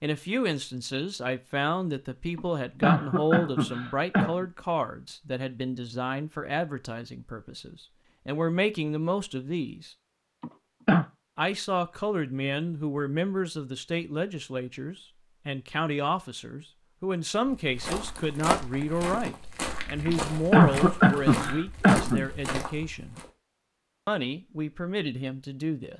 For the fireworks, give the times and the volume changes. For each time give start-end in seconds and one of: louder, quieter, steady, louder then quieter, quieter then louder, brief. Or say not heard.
not heard.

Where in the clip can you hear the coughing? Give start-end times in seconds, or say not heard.
2.4-4.5, 10.4-11.1, 20.1-22.2.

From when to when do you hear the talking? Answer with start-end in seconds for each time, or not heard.
0.0-9.9, 11.3-23.1, 24.1-25.9.